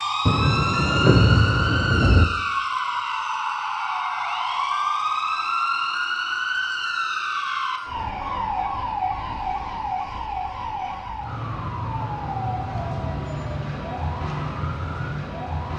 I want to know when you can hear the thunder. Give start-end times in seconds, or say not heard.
0.2-2.2.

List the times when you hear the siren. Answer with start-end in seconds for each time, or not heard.
0.0-15.7.